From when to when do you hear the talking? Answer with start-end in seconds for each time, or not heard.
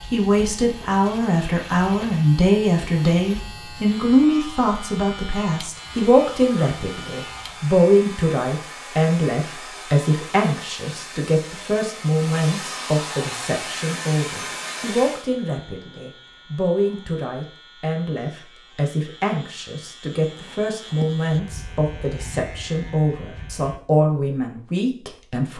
0.1-25.5.